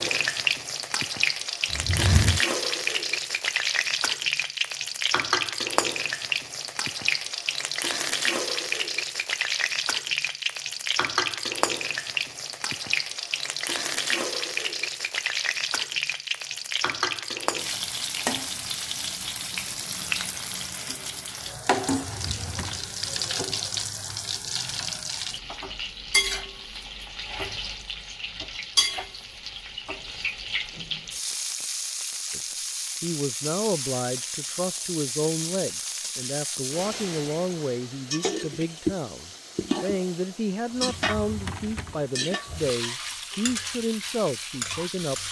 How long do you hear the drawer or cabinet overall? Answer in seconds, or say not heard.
4 s.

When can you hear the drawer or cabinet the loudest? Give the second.
2 s.